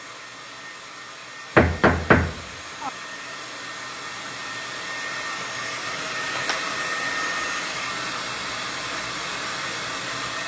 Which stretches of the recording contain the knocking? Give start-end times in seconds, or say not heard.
1.6-2.9.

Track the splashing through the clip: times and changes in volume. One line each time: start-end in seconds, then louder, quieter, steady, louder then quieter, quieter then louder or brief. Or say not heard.
not heard.